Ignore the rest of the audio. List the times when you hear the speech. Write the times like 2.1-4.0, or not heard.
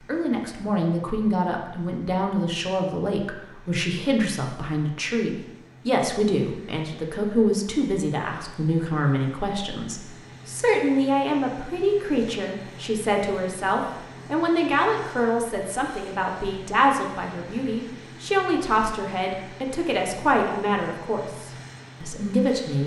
0.1-22.8.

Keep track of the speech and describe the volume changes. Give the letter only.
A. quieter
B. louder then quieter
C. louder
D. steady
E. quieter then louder
D.